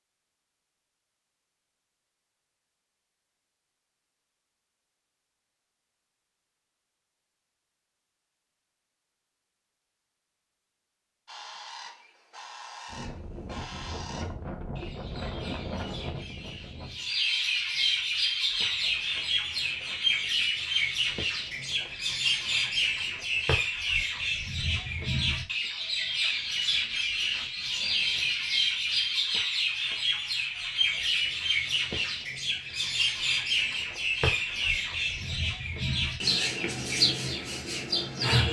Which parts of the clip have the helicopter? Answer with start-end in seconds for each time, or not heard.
not heard.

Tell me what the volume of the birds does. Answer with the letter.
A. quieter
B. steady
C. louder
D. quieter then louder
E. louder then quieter
C.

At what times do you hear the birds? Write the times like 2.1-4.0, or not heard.
11.2-38.4.